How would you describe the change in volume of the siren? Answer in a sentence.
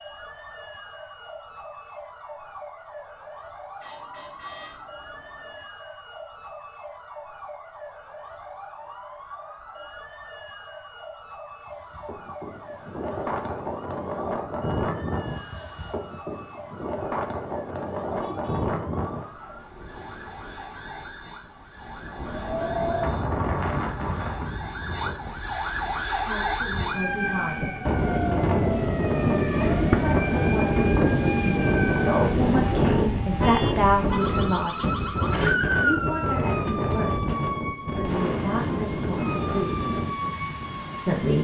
The loudness of the siren goes up.